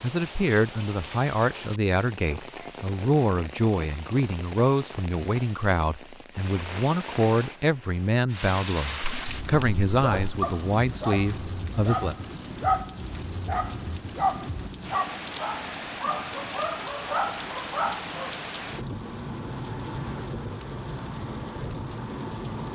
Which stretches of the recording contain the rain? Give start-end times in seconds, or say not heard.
0.0-22.7.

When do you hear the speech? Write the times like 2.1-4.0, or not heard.
0.0-12.2.